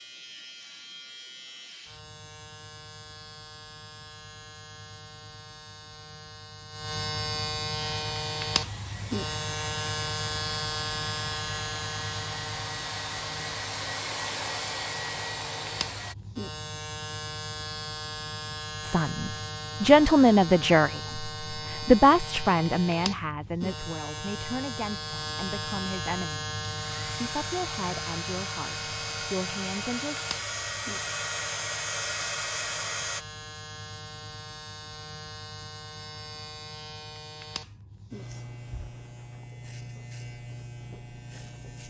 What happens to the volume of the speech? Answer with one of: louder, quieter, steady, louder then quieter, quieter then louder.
quieter.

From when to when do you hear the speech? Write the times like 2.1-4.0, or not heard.
18.8-30.1.